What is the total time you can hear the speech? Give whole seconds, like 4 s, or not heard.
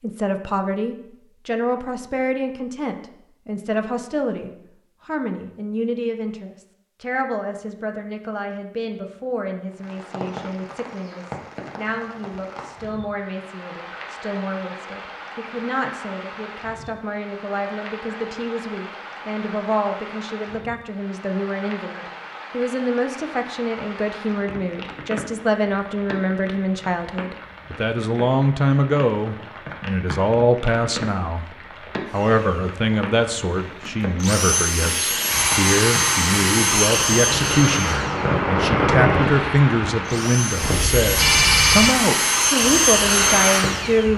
44 s.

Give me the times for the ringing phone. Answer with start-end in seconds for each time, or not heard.
40.6-42.0.